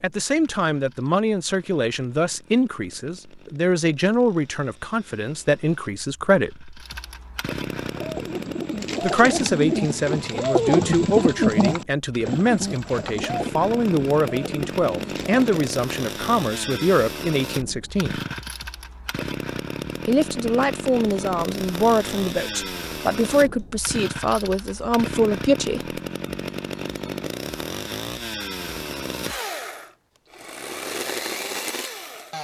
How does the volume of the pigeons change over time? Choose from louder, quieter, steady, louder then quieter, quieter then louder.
louder then quieter.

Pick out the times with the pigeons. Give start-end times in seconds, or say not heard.
7.8-15.8.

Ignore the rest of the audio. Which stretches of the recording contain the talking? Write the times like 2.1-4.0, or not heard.
0.0-6.7, 9.0-18.2, 20.1-26.0.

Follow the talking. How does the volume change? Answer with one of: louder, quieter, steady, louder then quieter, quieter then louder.
steady.